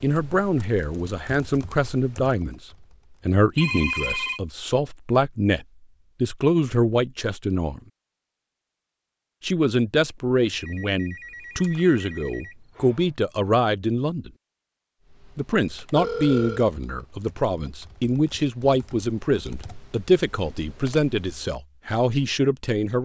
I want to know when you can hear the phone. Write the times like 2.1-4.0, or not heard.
3.5-4.4, 10.6-13.1, 15.9-16.7.